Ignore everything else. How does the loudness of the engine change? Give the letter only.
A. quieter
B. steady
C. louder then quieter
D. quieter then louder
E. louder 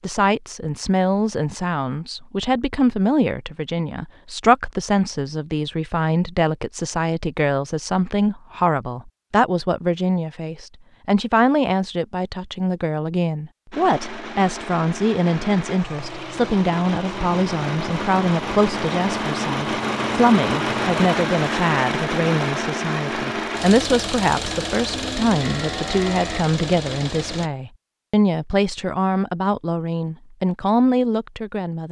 C.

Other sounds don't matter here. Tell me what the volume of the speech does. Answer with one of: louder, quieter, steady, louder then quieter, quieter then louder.
steady.